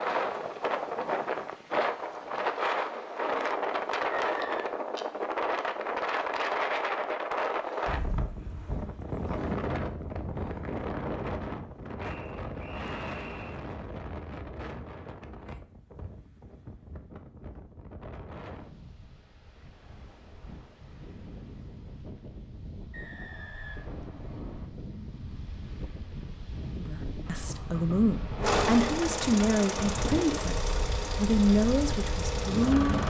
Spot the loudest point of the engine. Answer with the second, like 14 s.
29 s.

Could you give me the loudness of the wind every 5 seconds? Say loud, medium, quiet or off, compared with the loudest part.
loud, loud, medium, quiet, quiet, medium, medium.